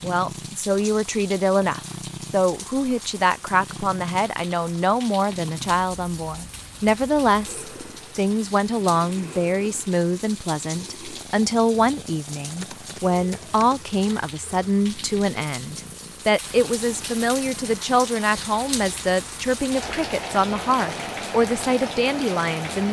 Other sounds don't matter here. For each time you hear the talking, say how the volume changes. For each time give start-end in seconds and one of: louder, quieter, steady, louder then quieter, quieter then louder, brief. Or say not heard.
0.0-22.8 steady.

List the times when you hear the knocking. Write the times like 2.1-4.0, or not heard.
not heard.